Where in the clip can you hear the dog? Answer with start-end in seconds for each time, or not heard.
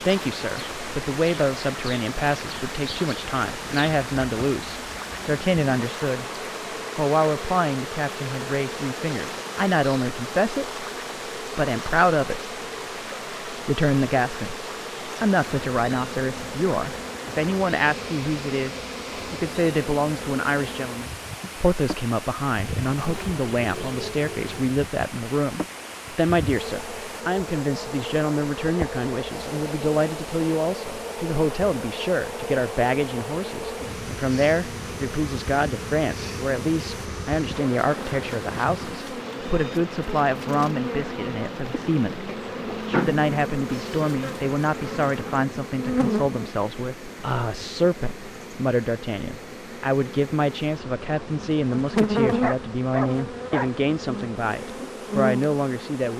52.4-53.7.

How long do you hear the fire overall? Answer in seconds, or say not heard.
not heard.